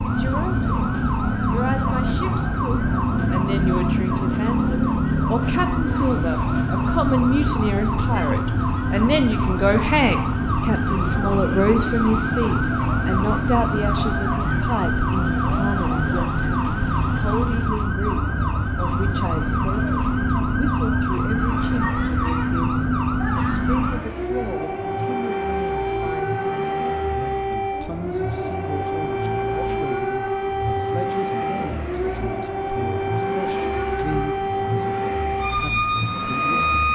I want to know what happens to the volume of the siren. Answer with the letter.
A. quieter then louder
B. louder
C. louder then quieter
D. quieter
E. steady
E.